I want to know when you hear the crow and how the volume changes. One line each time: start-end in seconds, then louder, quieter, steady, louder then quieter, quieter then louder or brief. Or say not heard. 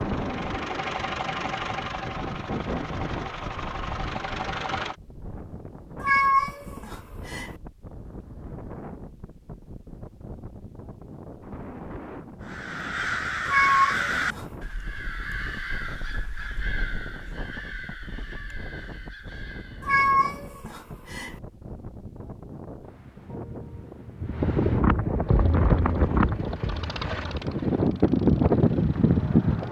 12.4-20.0 quieter.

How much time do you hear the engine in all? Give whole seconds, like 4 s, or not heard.
9 s.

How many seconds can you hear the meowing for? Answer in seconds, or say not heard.
4 s.